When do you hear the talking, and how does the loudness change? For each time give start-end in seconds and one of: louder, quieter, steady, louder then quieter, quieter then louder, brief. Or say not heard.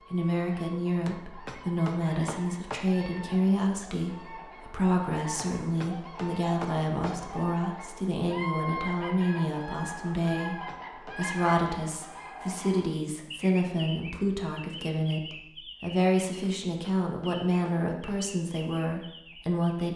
0.1-19.9 steady.